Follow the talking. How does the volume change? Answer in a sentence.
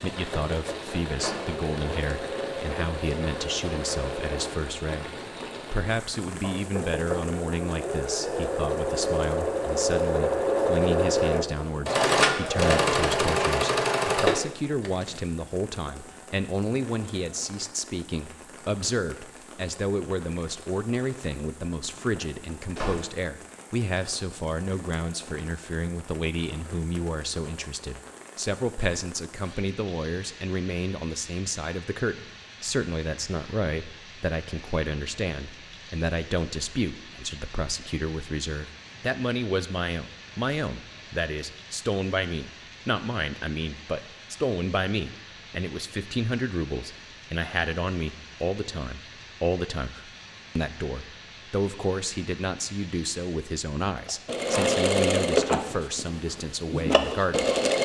The loudness of the talking stays about the same.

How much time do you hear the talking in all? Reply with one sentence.
The talking can be heard for 58 seconds in total.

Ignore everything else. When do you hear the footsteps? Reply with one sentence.
You can't hear the footsteps here.